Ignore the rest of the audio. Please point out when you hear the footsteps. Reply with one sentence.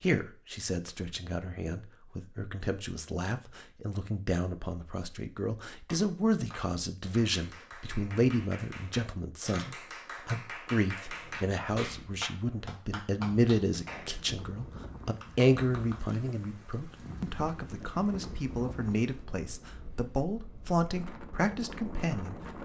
The footsteps can't be heard in this clip.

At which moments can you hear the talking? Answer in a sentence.
You can hear the talking from 0.0 to 22.6 s.